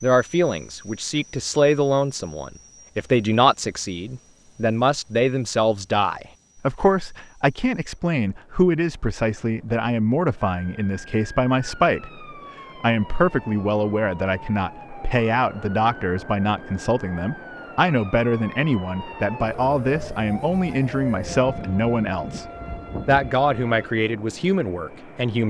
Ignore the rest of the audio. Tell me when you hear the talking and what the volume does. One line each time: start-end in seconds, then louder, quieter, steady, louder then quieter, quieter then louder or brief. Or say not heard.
0.0-25.4 steady.